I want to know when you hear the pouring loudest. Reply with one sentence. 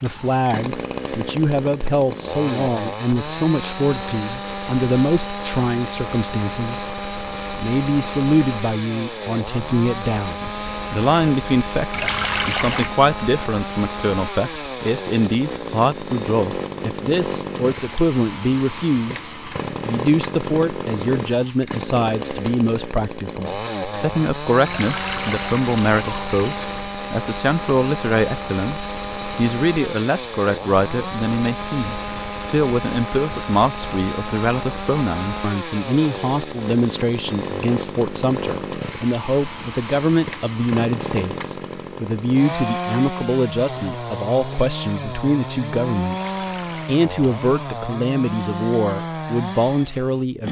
The volume of the pouring peaks at 12 seconds.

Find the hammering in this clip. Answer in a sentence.
You can't hear the hammering here.